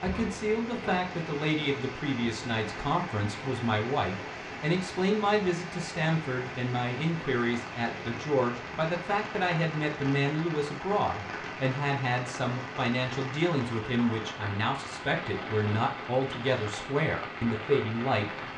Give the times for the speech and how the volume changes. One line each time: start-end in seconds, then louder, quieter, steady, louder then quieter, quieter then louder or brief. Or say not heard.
0.0-18.4 steady.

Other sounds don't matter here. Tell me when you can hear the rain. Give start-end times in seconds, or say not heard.
0.0-18.5.